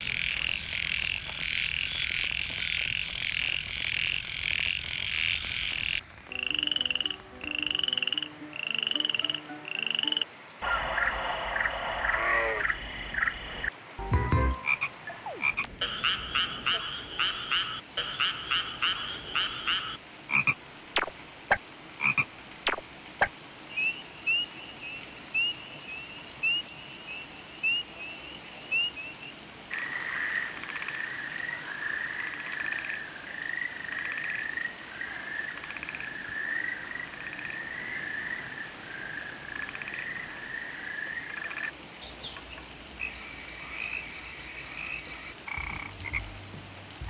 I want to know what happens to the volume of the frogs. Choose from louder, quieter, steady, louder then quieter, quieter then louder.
quieter.